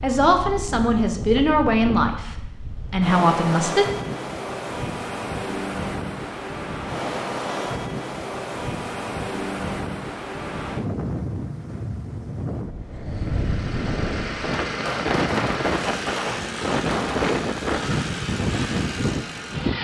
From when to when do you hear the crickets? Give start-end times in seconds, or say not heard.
not heard.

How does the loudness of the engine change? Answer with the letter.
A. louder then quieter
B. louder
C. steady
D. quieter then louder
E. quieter
C.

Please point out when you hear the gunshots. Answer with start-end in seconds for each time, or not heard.
14.7-17.4.